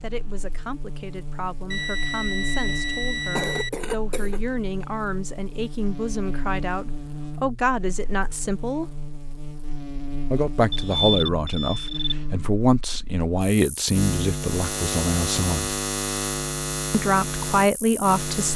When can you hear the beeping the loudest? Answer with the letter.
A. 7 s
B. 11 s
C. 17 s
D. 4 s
B.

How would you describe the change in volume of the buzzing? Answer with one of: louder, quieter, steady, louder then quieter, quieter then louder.
louder.